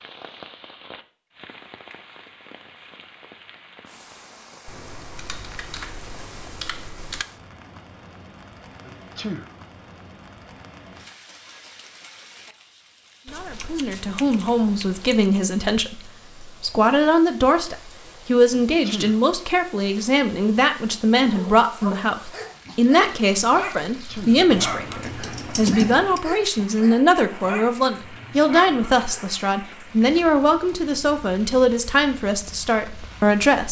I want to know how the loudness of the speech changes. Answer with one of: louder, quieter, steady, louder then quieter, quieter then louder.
steady.